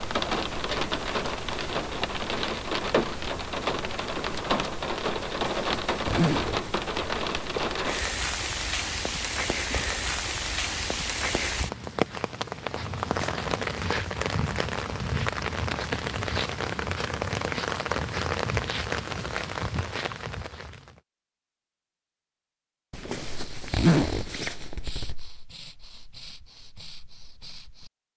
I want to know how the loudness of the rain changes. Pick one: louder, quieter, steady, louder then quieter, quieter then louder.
steady.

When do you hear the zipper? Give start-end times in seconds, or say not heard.
5.2-6.7, 22.9-25.1.